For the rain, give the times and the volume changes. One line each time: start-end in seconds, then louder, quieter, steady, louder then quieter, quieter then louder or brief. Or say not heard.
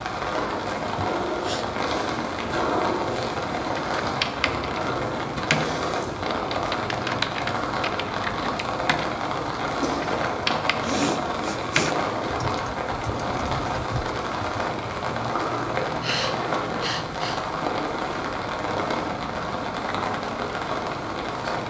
0.0-21.6 steady.